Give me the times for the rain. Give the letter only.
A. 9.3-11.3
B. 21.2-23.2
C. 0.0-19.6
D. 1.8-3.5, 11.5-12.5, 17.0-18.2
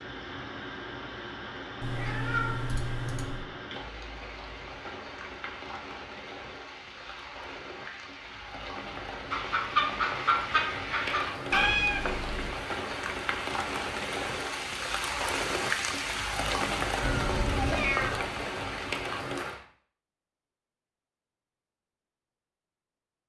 C.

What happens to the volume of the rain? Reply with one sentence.
The loudness of the rain goes up.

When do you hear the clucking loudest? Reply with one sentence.
The loudest moment of the clucking is at 10 seconds.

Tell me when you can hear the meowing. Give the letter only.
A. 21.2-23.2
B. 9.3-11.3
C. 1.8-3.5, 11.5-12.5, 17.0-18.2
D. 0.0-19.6
C.